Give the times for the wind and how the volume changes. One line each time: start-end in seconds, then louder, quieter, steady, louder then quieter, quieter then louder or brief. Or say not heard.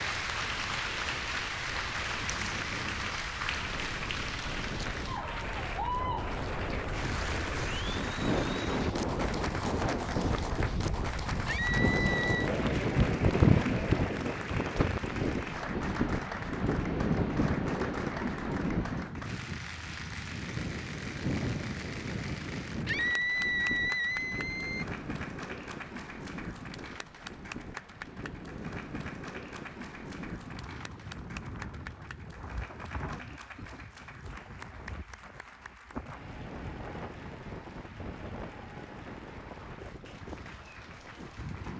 0.0-41.7 louder then quieter.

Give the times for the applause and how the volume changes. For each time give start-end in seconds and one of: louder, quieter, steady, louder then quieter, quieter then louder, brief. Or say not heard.
0.0-41.7 quieter.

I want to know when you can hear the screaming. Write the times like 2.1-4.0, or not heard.
11.4-12.5, 22.9-24.9.